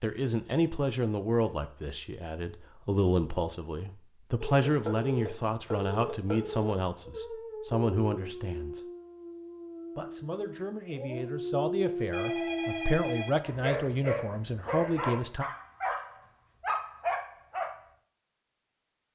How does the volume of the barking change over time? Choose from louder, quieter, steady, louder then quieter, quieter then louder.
louder.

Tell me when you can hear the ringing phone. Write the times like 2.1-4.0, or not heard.
4.5-6.8, 12.1-13.3.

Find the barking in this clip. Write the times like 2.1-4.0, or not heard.
7.0-17.8.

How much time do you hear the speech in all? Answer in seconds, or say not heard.
14 s.